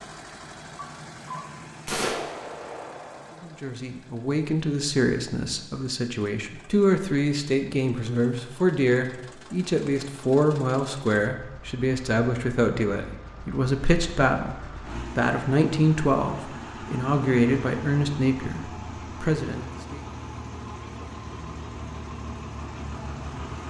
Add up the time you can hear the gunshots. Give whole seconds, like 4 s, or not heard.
3 s.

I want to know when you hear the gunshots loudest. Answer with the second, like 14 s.
2 s.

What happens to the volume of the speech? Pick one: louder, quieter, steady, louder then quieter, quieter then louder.
steady.